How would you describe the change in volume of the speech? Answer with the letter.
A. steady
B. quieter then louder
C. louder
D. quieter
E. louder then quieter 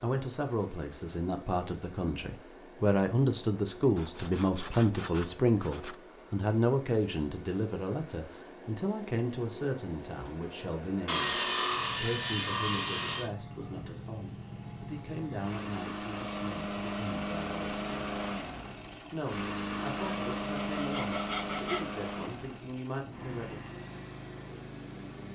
D.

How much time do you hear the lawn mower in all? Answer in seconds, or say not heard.
25 s.